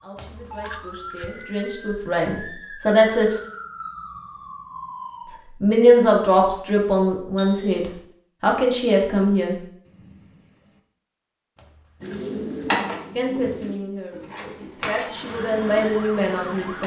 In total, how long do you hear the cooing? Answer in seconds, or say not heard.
5 s.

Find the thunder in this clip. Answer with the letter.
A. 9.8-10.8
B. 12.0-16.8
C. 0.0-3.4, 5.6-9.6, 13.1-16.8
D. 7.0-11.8
A.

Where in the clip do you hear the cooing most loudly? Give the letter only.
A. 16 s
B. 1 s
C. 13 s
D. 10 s
C.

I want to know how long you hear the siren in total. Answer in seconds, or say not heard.
7 s.